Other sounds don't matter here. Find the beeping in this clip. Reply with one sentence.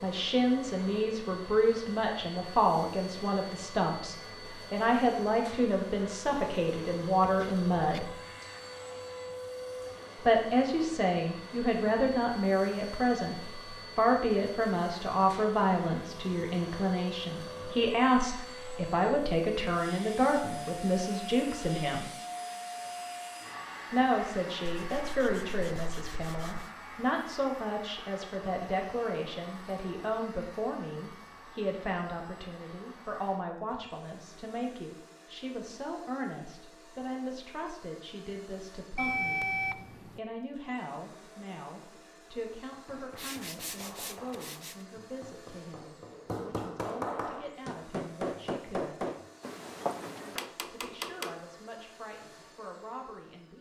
You can hear the beeping from 39.0 to 40.2 s.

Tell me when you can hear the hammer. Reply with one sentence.
You can hear the hammer from 42.9 to 51.4 s.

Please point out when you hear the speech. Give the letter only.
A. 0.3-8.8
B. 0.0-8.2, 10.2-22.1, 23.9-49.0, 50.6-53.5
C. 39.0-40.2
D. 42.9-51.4
B.